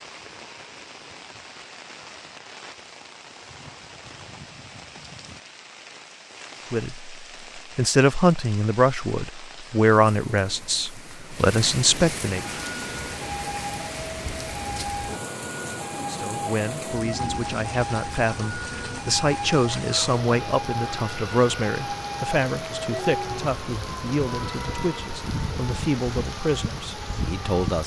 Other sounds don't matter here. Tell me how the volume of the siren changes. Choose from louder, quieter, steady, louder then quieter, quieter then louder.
steady.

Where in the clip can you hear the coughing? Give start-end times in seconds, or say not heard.
not heard.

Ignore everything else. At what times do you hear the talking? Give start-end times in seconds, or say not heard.
6.7-12.4, 15.9-27.8.